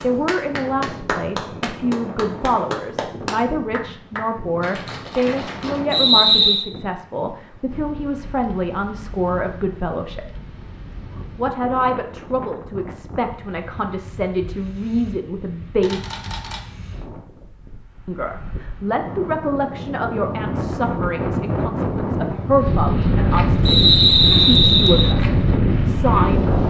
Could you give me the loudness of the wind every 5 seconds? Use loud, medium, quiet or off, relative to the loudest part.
quiet, quiet, quiet, quiet, loud, loud.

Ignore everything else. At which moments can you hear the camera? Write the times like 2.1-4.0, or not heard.
15.8-16.6.